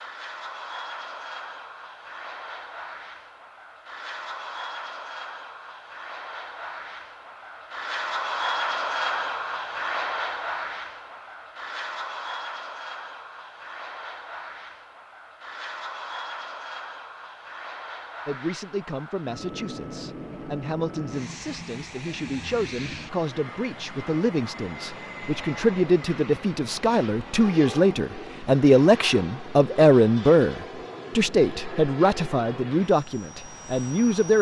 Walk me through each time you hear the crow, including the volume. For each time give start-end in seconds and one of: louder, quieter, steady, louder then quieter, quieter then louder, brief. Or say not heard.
not heard.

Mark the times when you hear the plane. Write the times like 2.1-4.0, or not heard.
0.0-34.3.